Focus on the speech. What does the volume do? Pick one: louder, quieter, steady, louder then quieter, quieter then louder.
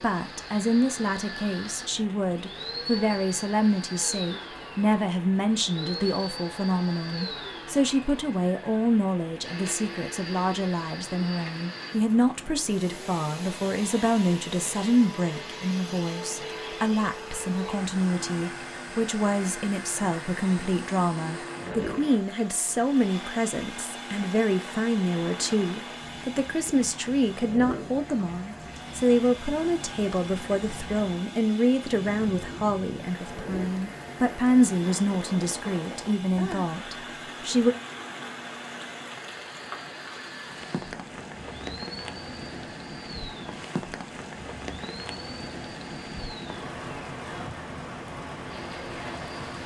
steady.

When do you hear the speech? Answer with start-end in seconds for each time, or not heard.
0.0-37.8.